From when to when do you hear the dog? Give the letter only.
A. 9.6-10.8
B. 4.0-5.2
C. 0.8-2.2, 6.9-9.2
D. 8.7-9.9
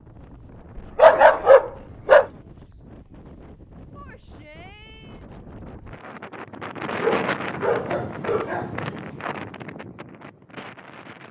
C.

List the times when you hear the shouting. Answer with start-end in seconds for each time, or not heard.
4.0-5.2.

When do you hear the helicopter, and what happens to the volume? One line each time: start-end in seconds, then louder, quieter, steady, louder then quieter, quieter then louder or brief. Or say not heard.
not heard.